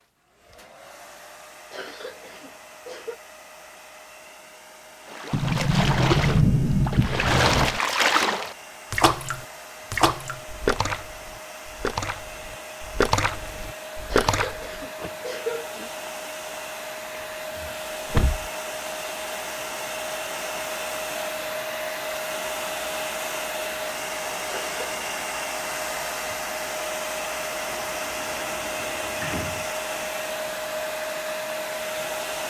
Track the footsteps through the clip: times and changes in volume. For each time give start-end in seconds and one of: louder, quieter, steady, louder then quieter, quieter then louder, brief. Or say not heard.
not heard.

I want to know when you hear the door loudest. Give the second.
6 s.